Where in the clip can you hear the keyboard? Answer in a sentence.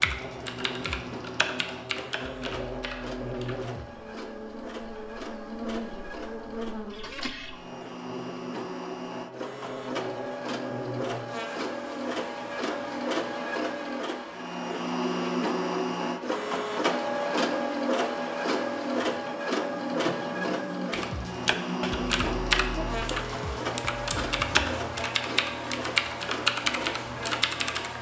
The keyboard can be heard from 0.0 to 3.8 s and from 20.9 to 27.9 s.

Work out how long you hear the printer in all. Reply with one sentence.
You can hear the printer for 28 seconds altogether.